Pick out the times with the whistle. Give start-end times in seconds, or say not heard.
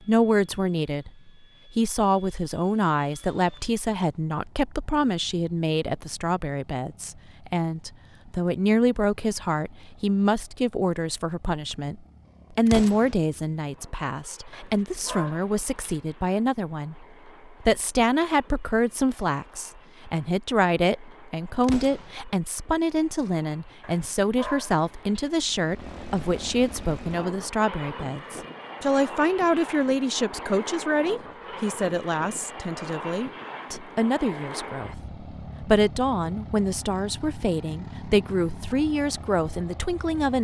not heard.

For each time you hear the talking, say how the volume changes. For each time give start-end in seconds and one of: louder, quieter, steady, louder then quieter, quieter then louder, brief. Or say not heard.
0.1-40.3 steady.